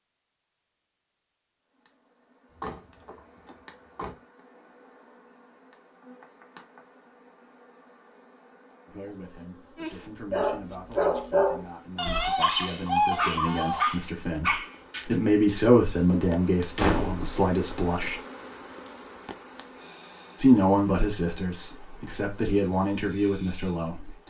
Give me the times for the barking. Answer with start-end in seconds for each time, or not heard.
9.8-15.2.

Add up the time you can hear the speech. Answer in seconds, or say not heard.
13 s.